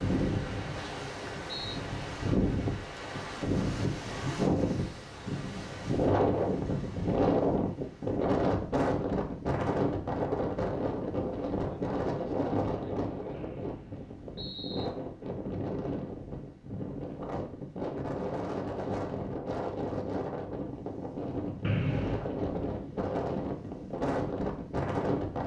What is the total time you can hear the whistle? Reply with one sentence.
You can hear the whistle for 4 seconds altogether.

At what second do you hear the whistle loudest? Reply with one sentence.
The volume of the whistle peaks at 22 seconds.